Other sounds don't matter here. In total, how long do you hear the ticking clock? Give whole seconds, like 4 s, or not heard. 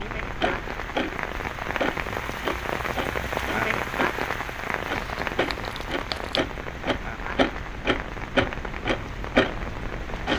10 s.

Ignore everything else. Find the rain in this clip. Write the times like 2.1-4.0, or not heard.
0.0-10.3.